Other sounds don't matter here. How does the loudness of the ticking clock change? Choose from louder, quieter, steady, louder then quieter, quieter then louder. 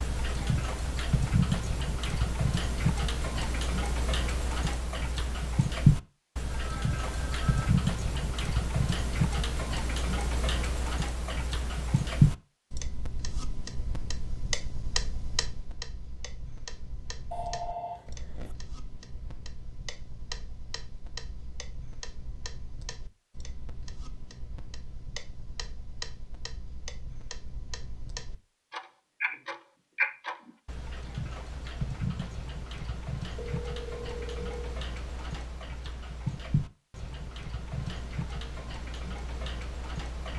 quieter then louder.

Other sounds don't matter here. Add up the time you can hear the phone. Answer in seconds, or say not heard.
4 s.